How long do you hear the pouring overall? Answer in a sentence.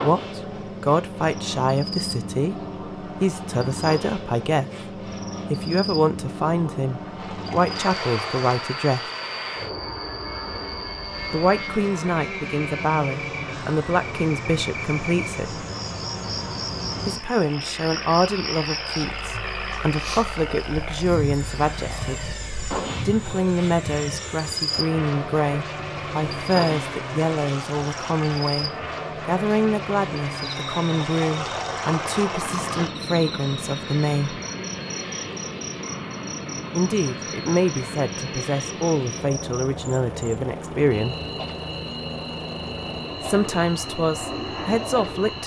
You can hear the pouring for 4 seconds altogether.